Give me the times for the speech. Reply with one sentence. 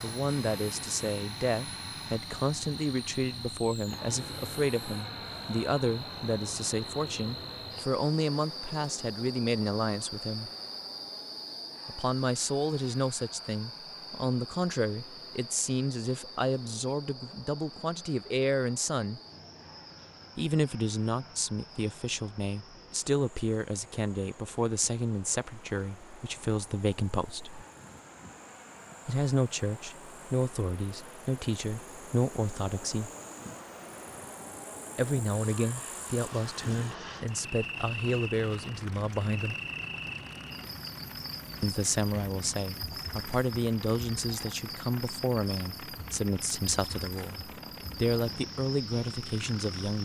You can hear the speech from 0.0 to 10.5 s, from 11.8 to 19.2 s, from 20.4 to 27.6 s, from 29.1 to 33.1 s, from 35.0 to 39.5 s and from 41.6 to 50.0 s.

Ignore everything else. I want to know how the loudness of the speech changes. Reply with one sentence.
The loudness of the speech stays about the same.